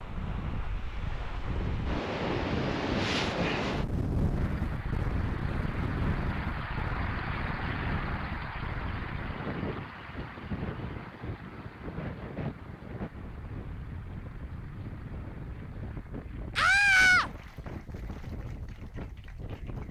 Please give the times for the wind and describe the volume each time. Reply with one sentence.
You can hear the wind from 0.0 to 19.8 s, getting quieter.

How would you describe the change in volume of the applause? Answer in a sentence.
The volume of the applause goes down.